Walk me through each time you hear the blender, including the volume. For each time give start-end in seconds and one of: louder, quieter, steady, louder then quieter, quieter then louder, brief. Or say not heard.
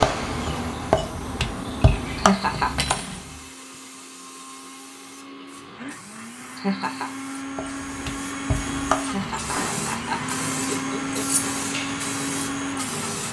0.0-13.2 quieter then louder.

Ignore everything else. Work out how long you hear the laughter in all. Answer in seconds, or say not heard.
3 s.